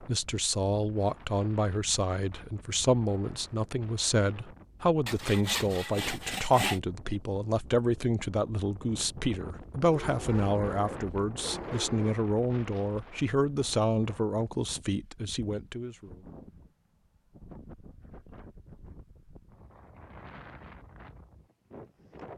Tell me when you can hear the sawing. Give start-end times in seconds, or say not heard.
5.0-6.8.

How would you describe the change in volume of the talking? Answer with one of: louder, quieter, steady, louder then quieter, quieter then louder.
steady.